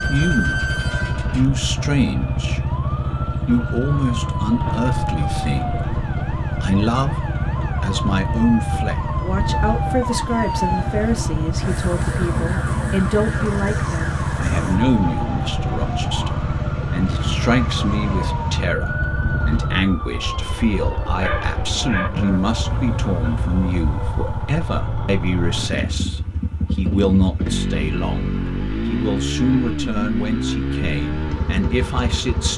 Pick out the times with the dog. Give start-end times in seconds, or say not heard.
21.1-22.1.